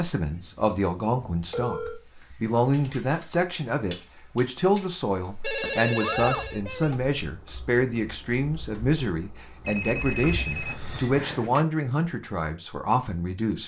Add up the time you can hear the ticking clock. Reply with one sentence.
You can't hear the ticking clock here.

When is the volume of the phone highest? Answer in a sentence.
The loudest moment of the phone is at 6 seconds.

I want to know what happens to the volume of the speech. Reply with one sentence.
The loudness of the speech stays about the same.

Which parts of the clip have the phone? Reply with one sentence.
You can hear the phone from 0.1 to 2.0 s, from 5.4 to 7.0 s and from 9.7 to 11.7 s.